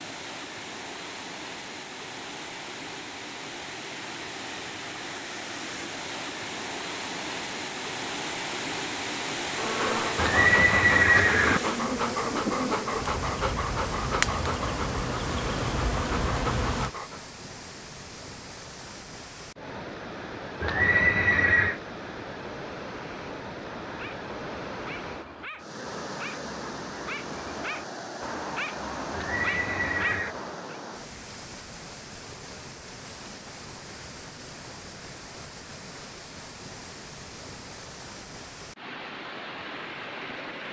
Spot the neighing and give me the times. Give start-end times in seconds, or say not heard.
10.2-11.6, 20.6-21.8, 29.1-30.4.